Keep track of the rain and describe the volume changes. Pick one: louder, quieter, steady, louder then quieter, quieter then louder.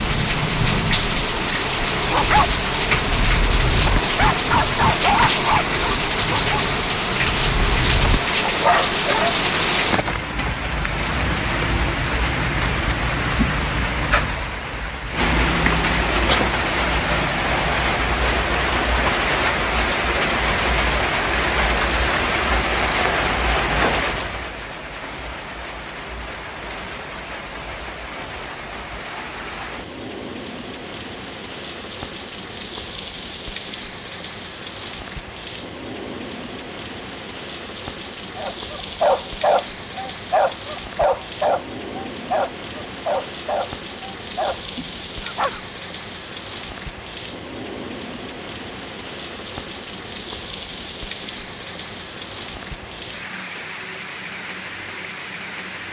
quieter.